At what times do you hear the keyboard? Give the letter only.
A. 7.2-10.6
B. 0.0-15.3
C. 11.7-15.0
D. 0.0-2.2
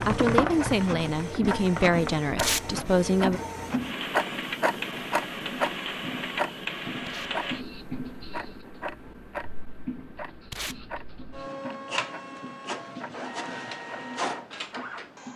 D.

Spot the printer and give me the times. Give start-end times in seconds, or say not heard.
0.0-15.3.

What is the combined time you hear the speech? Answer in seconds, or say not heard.
3 s.